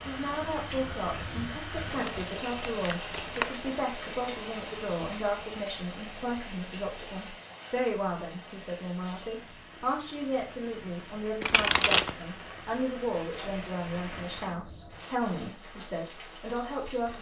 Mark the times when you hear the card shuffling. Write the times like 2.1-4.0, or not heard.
1.9-3.5, 11.4-12.2.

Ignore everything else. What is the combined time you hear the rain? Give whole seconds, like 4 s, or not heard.
17 s.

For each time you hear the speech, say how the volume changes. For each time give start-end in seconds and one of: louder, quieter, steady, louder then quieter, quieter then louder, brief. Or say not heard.
0.0-17.1 steady.